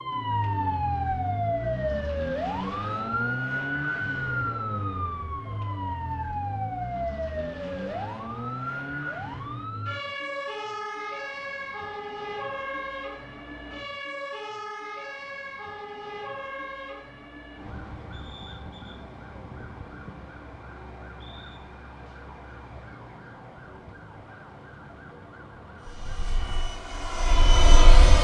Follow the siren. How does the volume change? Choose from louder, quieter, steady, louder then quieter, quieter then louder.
quieter.